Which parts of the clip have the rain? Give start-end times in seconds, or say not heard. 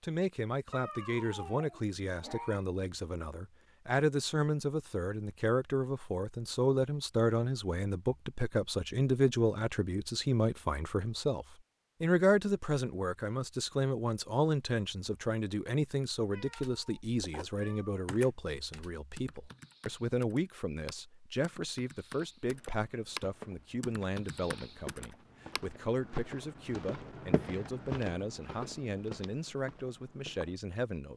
not heard.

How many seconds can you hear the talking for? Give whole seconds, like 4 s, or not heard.
31 s.